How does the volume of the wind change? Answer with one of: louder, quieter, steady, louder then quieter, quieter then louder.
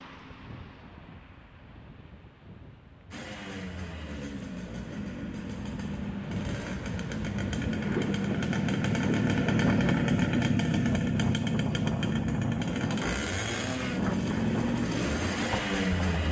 louder.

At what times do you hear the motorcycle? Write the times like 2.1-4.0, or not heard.
3.1-16.2.